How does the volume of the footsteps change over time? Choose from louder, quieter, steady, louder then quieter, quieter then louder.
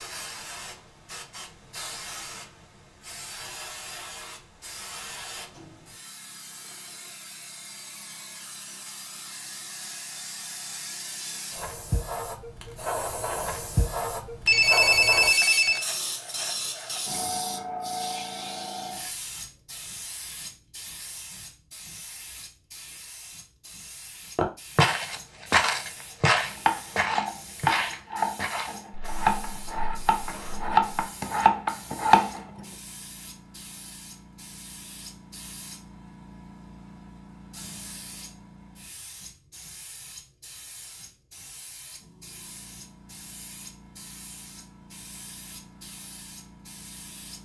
quieter.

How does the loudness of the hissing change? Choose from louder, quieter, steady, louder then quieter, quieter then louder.
louder then quieter.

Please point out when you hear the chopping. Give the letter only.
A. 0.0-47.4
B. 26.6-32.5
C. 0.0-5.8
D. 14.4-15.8
B.